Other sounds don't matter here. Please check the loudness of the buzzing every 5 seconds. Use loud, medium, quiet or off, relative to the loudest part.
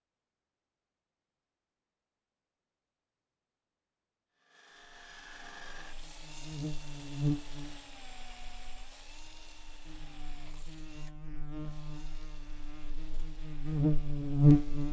off, medium, loud.